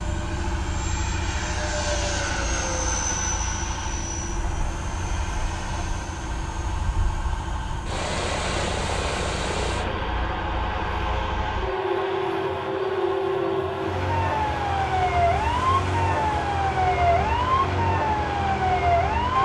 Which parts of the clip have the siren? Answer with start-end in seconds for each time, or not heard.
0.0-19.4.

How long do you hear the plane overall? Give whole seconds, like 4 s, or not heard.
19 s.